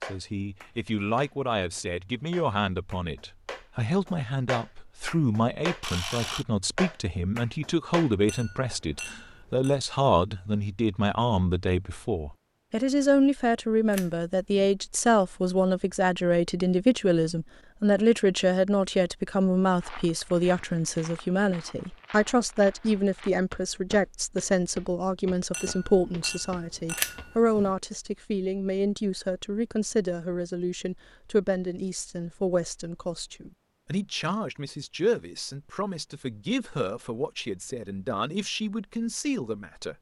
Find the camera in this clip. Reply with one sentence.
The camera can be heard from 5.8 to 6.5 s, from 13.9 to 14.7 s and from 26.9 to 27.7 s.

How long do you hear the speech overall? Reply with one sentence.
You can hear the speech for 40 seconds altogether.